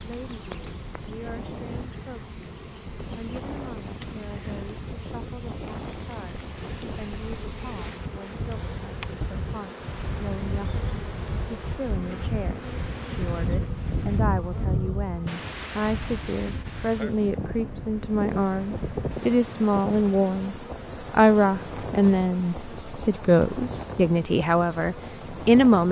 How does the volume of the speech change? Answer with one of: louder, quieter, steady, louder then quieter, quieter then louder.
louder.